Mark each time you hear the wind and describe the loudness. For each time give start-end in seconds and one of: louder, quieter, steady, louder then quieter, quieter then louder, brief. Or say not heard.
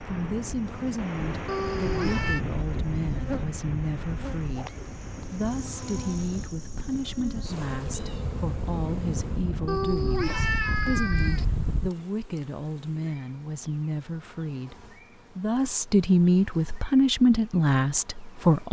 0.0-11.9 quieter then louder.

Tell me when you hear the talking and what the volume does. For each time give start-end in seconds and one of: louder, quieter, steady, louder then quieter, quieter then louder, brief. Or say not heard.
0.0-18.6 louder.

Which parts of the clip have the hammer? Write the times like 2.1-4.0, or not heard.
not heard.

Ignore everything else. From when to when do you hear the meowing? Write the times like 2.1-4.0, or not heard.
1.4-2.4, 9.7-11.4.